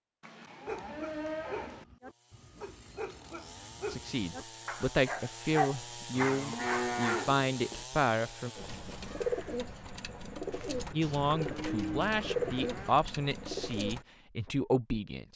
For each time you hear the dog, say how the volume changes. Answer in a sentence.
You can hear the dog from 0.7 to 7.3 s, getting louder.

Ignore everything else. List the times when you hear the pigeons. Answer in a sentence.
You can hear the pigeons from 8.6 to 14.1 s.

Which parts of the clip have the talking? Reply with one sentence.
The talking can be heard from 3.9 to 8.5 s and from 10.9 to 15.3 s.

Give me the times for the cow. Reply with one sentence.
You can hear the cow from 0.2 to 1.9 s, from 6.2 to 7.8 s and from 10.9 to 12.9 s.